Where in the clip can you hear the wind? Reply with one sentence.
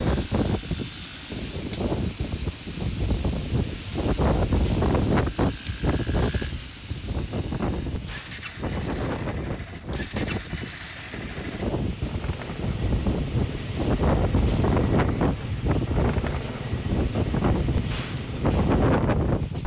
The wind can be heard from 0.0 to 19.6 s.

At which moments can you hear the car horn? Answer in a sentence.
You can't hear the car horn here.